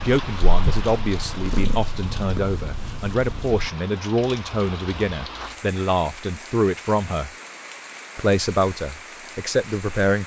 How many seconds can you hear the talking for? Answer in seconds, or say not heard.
9 s.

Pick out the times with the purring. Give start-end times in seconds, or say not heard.
0.0-3.6.